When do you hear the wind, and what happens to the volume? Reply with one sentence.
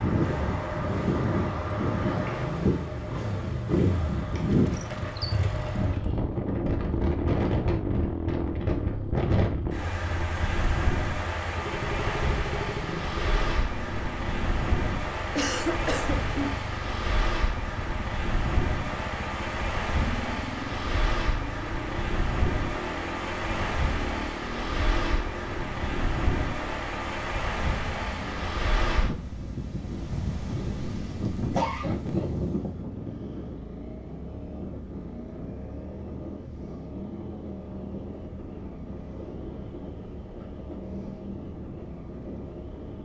The wind can be heard from 0.0 to 42.9 s, getting quieter.